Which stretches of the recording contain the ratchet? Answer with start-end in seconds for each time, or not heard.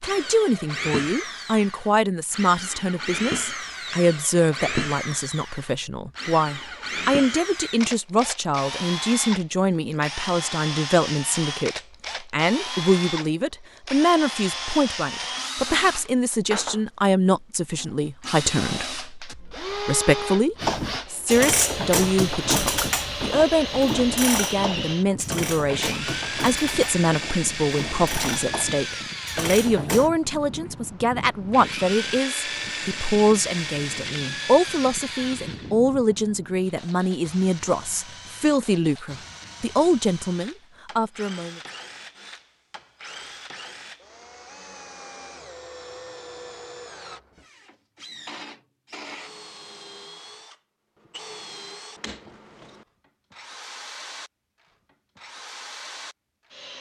20.6-30.1.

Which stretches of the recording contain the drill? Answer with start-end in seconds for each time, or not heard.
0.0-56.7.